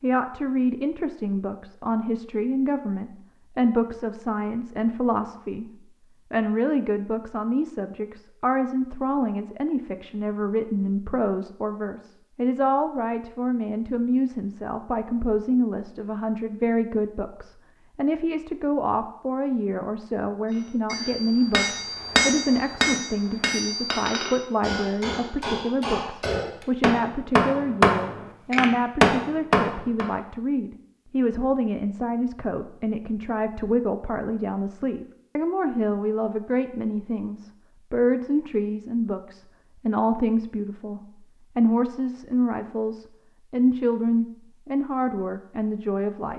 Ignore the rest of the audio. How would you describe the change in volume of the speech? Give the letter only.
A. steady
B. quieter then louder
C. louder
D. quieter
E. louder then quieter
A.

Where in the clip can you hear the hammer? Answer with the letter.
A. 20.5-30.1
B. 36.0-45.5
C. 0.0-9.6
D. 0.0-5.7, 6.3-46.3
A.